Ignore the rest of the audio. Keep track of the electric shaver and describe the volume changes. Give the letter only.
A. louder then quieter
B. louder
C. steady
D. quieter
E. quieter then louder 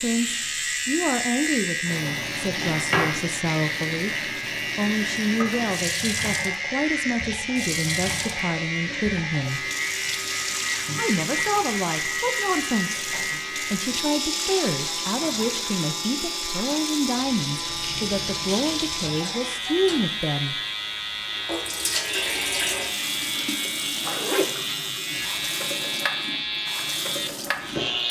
C.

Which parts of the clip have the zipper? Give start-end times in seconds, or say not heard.
23.6-24.4.